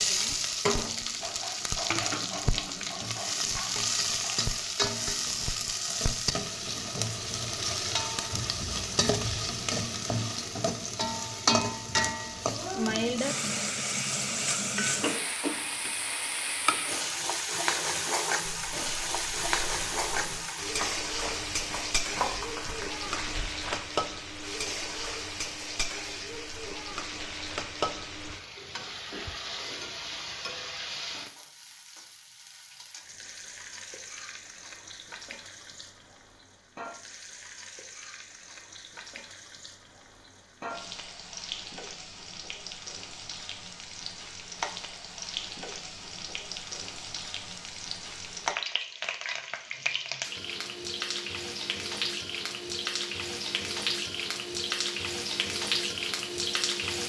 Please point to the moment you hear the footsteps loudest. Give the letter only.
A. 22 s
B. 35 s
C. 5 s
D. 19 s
A.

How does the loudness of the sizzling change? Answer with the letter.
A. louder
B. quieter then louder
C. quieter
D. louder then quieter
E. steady
B.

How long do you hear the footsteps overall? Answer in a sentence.
The footsteps can be heard for 5 seconds in total.